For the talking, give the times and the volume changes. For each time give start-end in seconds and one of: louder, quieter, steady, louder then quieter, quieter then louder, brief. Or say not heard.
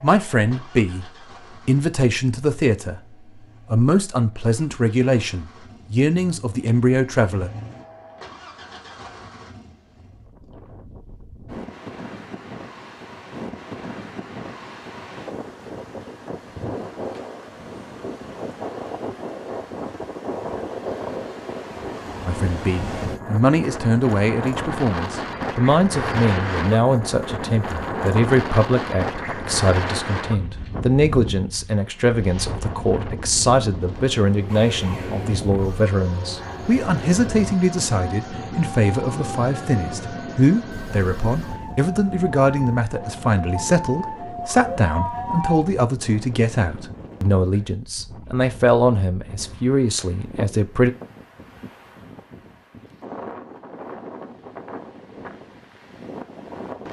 0.0-7.5 steady
22.2-50.9 steady.